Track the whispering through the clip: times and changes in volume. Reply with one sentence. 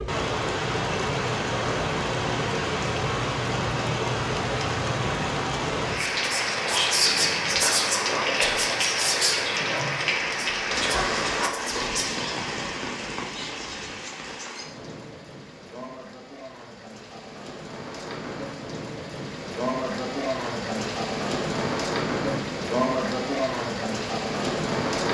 You can hear the whispering from 6.2 to 12.1 s, getting quieter.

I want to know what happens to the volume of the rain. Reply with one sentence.
The volume of the rain goes down, then up.